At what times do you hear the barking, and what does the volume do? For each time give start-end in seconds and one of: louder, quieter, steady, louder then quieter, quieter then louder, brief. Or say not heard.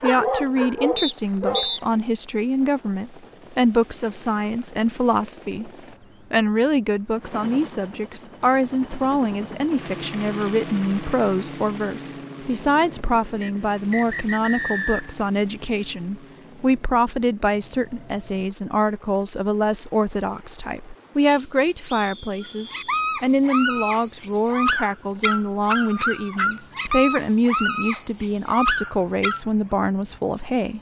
0.0-2.0 brief
22.4-29.4 steady.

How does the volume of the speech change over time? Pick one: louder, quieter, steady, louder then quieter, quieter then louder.
steady.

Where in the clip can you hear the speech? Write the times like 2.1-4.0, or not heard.
0.0-5.7, 6.3-30.7.